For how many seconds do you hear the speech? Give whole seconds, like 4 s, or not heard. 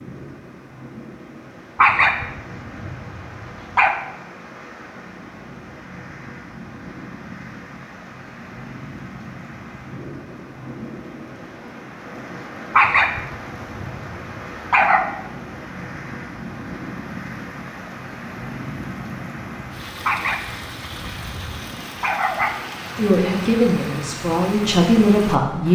3 s.